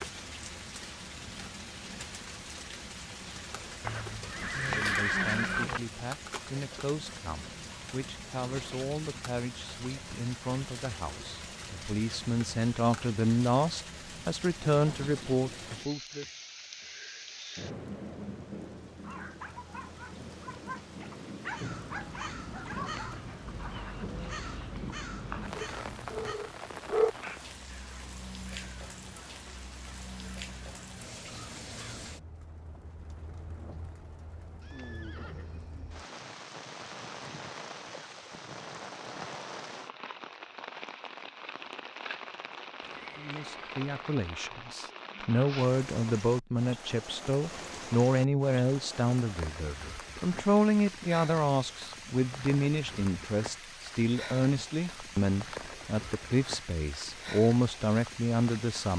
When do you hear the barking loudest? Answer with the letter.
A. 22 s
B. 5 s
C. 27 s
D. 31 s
C.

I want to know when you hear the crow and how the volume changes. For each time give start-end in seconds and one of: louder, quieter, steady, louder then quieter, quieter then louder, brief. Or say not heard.
21.4-32.0 quieter.